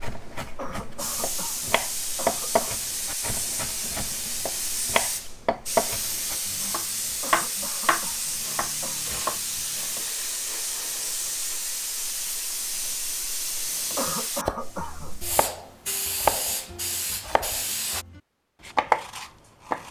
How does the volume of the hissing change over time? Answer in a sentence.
The volume of the hissing stays about the same.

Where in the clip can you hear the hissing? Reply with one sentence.
The hissing can be heard from 0.0 to 18.1 s.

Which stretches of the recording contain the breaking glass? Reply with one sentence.
The breaking glass can't be heard in this clip.